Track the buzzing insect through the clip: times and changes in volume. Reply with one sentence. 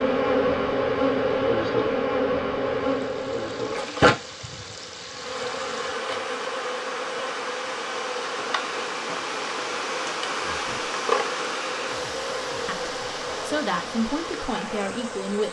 You can hear the buzzing insect from 0.0 to 15.4 s, getting quieter.